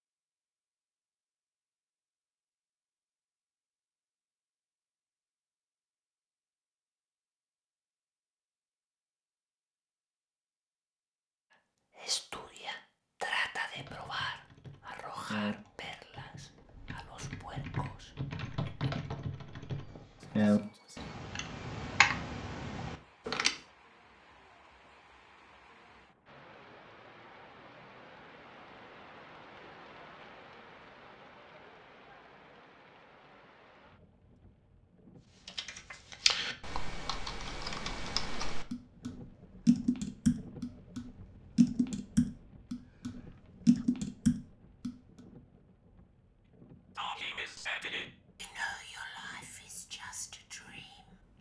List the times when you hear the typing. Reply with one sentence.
The typing can be heard from 13.8 to 23.6 s and from 35.5 to 44.9 s.